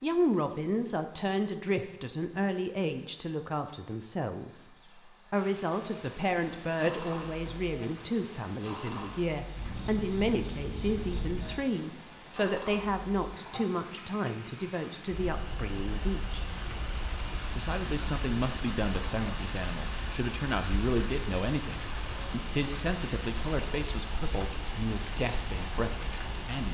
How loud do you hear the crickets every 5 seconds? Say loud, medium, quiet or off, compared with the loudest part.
loud, loud, loud, medium, quiet, quiet.